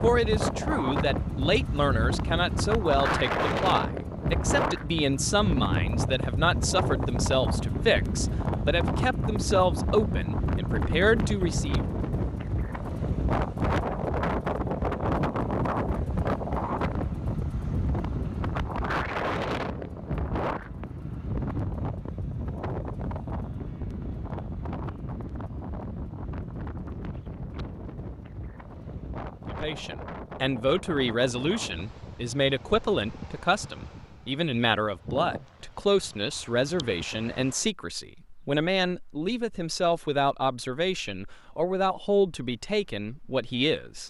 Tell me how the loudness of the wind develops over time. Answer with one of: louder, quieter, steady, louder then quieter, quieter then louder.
quieter.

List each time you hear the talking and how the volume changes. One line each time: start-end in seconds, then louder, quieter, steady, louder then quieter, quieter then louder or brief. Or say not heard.
0.0-11.8 steady
29.5-44.0 steady.